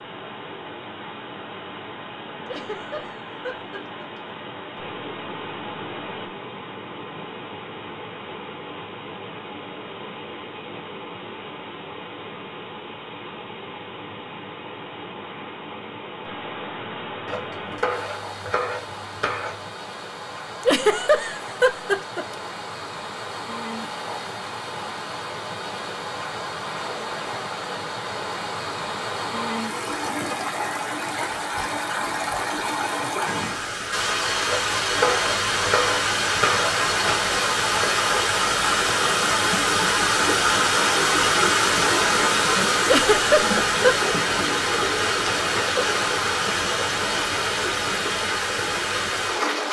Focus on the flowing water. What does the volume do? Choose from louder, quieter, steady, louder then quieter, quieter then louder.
louder.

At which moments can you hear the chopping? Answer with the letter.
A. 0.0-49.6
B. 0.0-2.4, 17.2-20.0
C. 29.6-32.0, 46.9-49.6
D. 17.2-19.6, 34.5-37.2
D.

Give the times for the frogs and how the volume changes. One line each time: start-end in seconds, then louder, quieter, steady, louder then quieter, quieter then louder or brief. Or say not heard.
not heard.